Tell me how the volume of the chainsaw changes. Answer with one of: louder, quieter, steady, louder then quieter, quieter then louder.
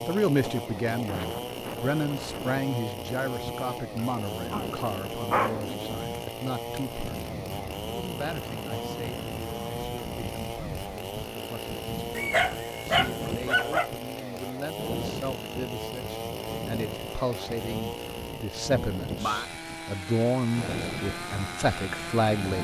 steady.